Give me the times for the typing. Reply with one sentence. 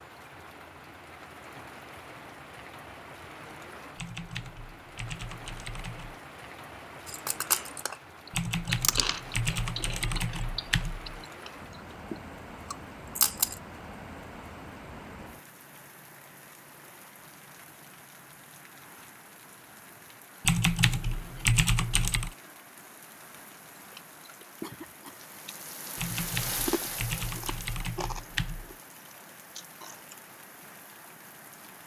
You can hear the typing from 4.0 to 6.2 s, from 8.3 to 11.2 s, from 20.4 to 22.4 s and from 25.9 to 28.8 s.